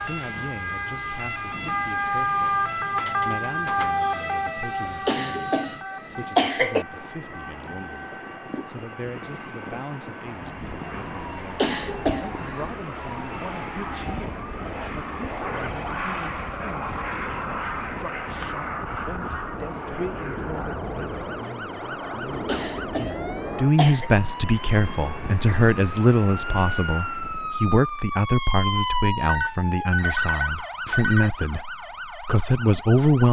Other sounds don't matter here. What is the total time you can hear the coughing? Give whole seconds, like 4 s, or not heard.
4 s.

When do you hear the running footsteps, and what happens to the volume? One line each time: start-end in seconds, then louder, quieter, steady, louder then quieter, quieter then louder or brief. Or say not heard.
not heard.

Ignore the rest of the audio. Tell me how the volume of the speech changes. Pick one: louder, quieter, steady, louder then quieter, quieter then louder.
louder.